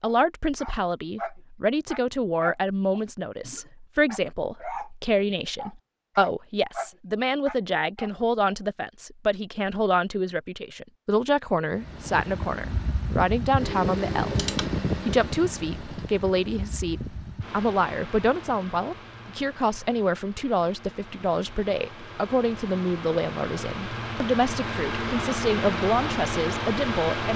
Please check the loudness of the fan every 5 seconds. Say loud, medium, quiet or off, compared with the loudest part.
off, off, loud, medium, medium, loud.